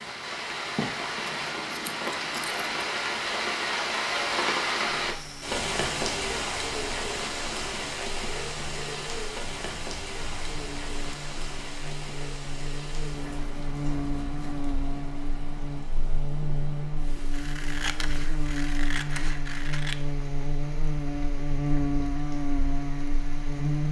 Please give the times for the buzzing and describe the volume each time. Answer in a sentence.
The buzzing can be heard from 5.0 to 23.8 s, getting louder.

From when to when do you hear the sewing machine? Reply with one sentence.
You can't hear the sewing machine here.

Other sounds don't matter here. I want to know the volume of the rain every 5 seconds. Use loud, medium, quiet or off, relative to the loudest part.
loud, loud, medium, quiet, quiet.